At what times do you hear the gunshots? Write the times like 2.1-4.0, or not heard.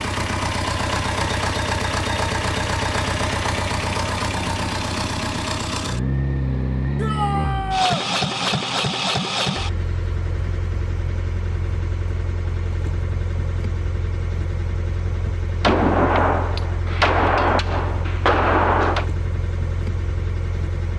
15.6-19.1.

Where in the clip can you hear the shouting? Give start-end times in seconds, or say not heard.
7.0-8.1.